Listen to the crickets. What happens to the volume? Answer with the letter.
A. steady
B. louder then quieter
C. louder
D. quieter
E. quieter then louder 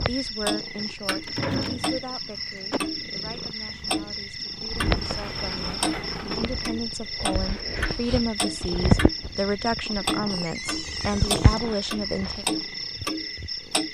A.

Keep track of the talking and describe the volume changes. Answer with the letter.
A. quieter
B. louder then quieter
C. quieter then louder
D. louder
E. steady
C.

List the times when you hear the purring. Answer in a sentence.
The purring can be heard from 0.0 to 2.1 s and from 3.0 to 13.8 s.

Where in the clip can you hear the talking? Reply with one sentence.
You can hear the talking from 0.1 to 12.4 s.